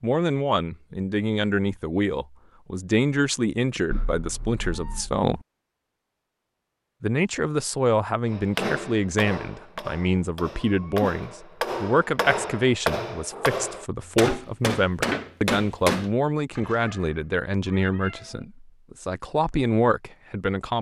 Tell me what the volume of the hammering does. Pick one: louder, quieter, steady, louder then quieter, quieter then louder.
louder.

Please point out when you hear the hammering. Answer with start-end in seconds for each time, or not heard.
8.3-16.1.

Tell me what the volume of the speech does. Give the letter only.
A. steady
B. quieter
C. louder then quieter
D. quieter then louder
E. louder
A.